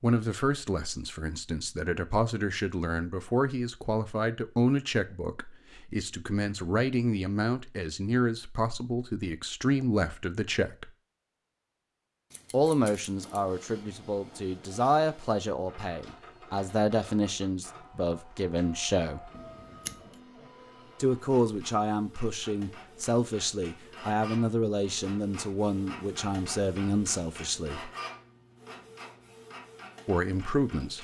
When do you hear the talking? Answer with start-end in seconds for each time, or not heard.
0.0-10.9, 12.5-19.3, 21.0-27.9, 30.1-30.9.